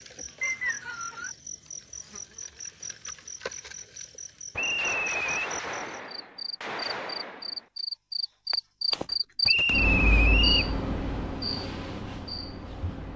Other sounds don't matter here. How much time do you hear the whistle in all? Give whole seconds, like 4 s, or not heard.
3 s.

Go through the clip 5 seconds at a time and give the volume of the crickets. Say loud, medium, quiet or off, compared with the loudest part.
medium, loud, loud.